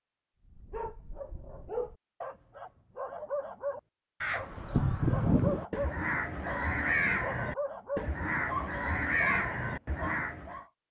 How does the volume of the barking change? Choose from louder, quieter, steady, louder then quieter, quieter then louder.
louder.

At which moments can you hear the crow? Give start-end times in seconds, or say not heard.
4.2-10.6.